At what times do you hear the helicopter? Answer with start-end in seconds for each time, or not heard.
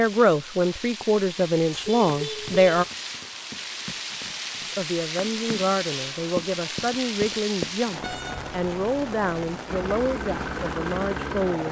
9.7-11.6.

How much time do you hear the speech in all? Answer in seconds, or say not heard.
10 s.